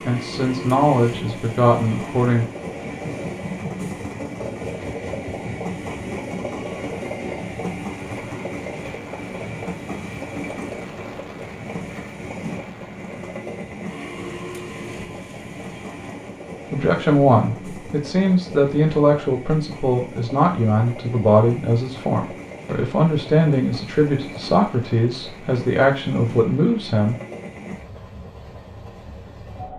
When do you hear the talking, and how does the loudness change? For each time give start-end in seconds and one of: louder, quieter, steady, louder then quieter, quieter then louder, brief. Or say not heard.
0.1-2.5 brief
16.7-27.1 steady.